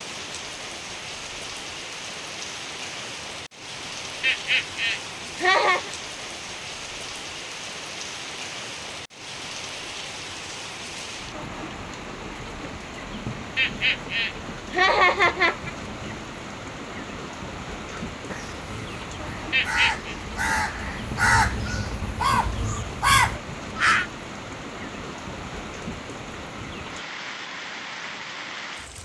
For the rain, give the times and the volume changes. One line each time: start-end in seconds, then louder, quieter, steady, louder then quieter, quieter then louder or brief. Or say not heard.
0.0-28.9 steady.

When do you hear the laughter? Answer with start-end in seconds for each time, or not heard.
4.2-5.9, 13.6-15.7, 19.5-20.1.